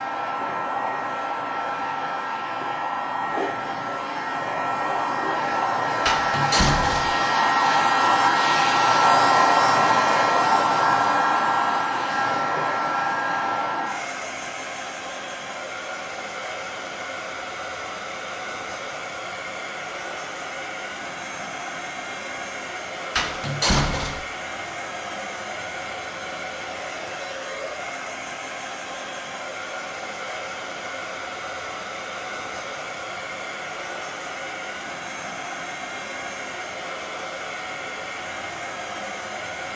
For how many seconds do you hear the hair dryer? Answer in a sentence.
The hair dryer can be heard for 40 seconds in total.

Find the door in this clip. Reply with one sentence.
You can hear the door from 6.0 to 7.2 s and from 23.1 to 24.2 s.